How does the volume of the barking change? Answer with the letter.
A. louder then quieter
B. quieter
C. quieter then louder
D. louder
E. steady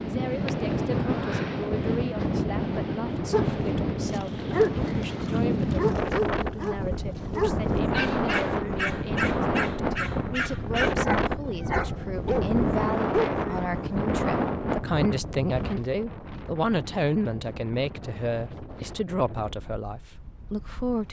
E.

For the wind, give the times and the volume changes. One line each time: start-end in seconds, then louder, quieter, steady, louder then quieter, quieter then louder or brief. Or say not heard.
0.0-21.0 quieter.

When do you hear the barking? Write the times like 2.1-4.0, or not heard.
3.3-13.2.